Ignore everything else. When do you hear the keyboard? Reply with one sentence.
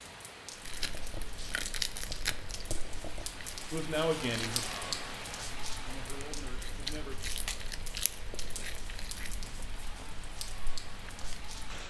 You can't hear the keyboard here.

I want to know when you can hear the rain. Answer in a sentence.
You can hear the rain from 0.0 to 11.8 s.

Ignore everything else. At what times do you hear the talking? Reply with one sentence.
You can hear the talking from 3.7 to 4.8 s and from 5.8 to 7.2 s.